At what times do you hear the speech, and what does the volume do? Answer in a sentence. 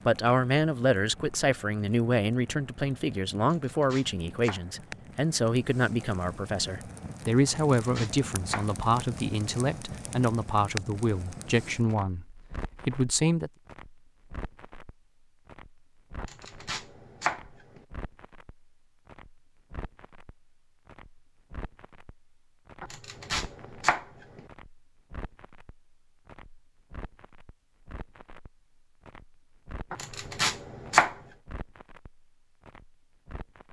The speech can be heard from 0.1 to 13.5 s, at a steady volume.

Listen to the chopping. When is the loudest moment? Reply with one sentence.
The loudest moment of the chopping is at 31 seconds.